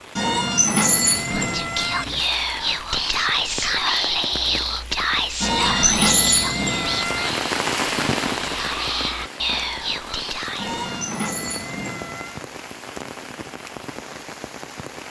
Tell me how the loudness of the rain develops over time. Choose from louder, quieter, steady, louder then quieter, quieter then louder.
louder then quieter.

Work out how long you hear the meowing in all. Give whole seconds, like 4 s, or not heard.
6 s.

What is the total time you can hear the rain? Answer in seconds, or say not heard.
15 s.